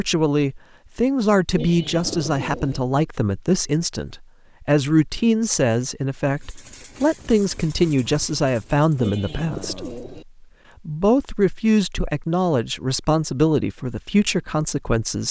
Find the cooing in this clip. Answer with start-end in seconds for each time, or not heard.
1.6-2.8, 9.0-10.2.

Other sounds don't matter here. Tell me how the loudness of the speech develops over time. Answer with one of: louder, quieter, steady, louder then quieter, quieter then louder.
steady.